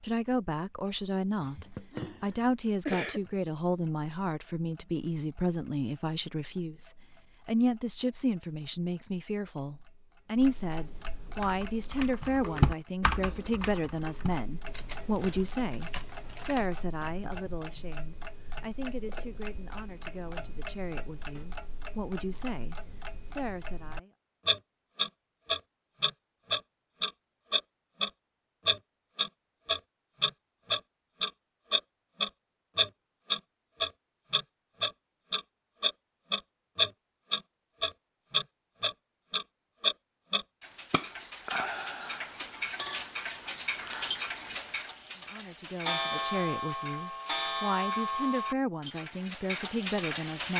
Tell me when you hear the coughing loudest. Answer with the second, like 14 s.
3 s.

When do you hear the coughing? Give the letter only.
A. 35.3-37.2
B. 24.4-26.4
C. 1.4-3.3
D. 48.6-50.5
C.